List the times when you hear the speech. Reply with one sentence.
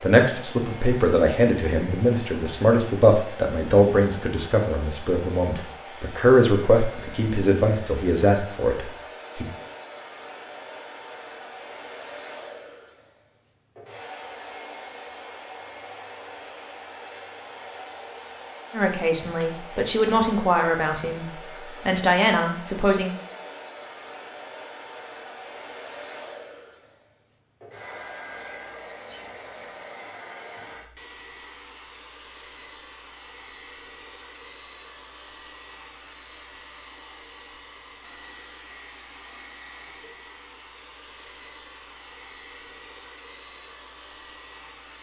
You can hear the speech from 0.0 to 9.4 s and from 18.7 to 23.1 s.